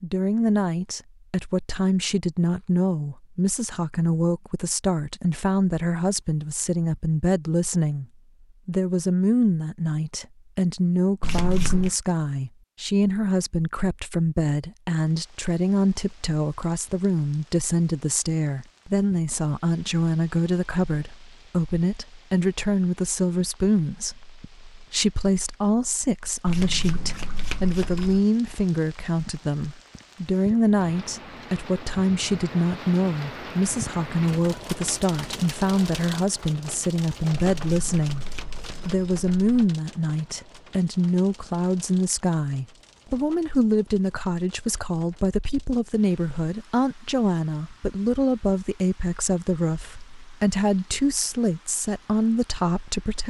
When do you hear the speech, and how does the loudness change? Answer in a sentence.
You can hear the speech from 0.0 to 8.1 s, at a steady volume; from 8.7 to 38.2 s, at a steady volume; and from 38.9 to 53.2 s, at a steady volume.